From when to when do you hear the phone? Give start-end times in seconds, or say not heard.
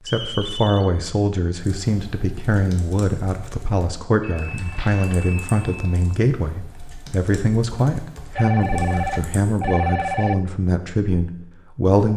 0.1-0.9, 4.2-6.2, 8.3-10.3.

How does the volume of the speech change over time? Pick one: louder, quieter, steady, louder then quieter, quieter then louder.
steady.